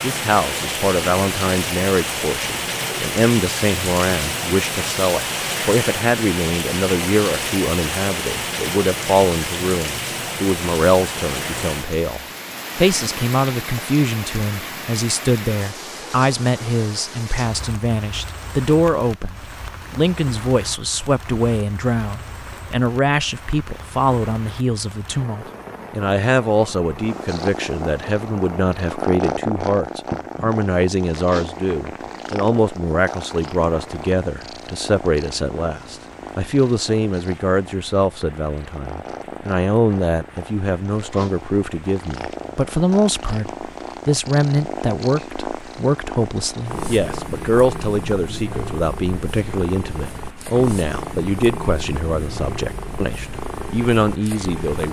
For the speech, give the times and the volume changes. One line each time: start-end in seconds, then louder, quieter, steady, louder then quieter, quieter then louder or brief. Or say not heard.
0.0-54.8 steady.